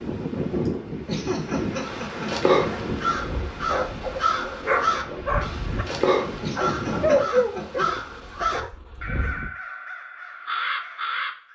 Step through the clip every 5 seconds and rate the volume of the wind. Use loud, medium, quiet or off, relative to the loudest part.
loud, loud, off.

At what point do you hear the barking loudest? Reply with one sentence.
The loudest moment of the barking is at 7 seconds.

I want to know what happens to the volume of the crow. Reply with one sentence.
The loudness of the crow goes down.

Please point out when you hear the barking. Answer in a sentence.
The barking can be heard from 2.6 to 9.5 s.